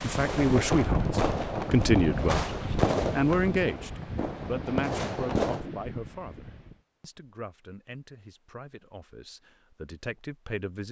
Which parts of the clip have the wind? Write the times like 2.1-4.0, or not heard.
0.0-6.8.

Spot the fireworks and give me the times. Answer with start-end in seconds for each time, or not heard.
0.1-5.7.